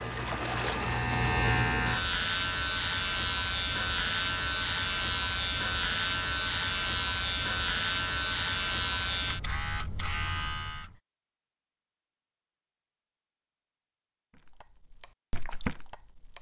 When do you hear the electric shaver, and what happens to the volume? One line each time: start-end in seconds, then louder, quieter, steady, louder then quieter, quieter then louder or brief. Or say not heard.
0.0-10.9 steady.